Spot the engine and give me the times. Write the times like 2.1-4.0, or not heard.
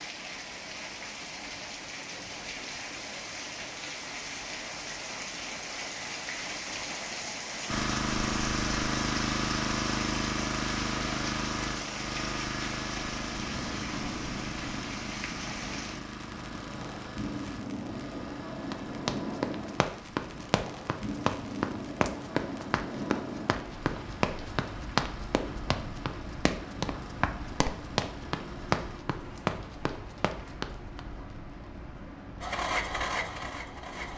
7.7-29.0, 32.4-34.1.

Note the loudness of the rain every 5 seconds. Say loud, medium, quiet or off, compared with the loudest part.
loud, loud, loud, loud, loud, medium, medium.